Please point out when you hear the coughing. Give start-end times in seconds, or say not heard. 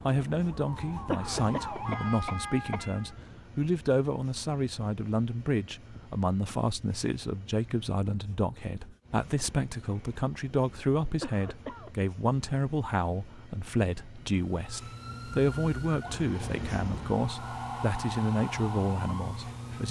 1.1-2.9, 11.2-11.9.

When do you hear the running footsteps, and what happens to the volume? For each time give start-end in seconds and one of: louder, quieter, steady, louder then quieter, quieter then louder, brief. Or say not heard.
not heard.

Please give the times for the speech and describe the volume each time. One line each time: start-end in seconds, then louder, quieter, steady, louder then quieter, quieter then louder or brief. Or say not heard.
0.0-19.8 steady.